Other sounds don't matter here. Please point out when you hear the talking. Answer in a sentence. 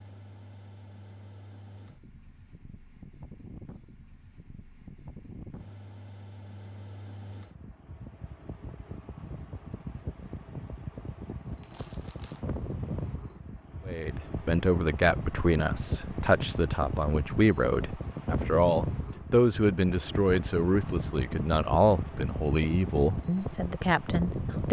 You can hear the talking from 13.8 to 24.6 s.